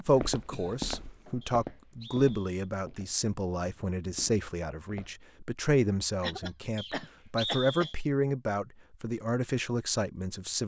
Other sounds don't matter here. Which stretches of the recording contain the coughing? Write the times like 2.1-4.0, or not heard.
0.5-1.5, 6.2-7.9.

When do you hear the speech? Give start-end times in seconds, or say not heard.
0.0-10.6.